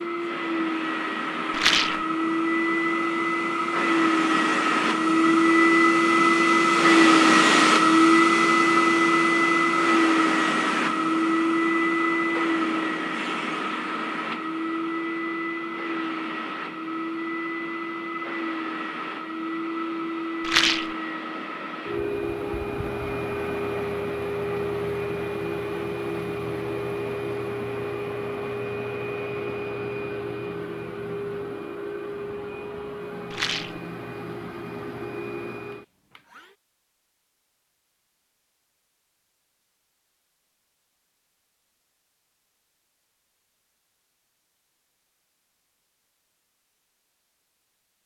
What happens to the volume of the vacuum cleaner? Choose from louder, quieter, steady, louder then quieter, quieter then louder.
quieter.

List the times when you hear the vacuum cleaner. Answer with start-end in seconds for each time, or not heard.
0.0-36.5.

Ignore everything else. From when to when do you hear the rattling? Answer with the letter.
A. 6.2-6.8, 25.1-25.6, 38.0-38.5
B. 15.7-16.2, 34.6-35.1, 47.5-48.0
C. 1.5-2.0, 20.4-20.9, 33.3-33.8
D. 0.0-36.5
C.